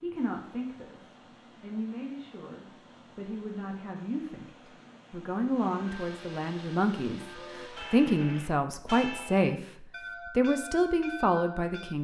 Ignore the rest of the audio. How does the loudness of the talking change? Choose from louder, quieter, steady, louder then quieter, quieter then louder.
louder.